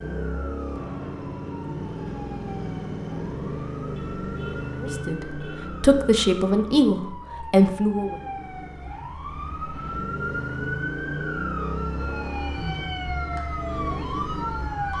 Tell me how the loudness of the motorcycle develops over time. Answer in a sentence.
The volume of the motorcycle goes down, then up.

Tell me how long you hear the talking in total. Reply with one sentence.
The talking can be heard for 3 seconds in total.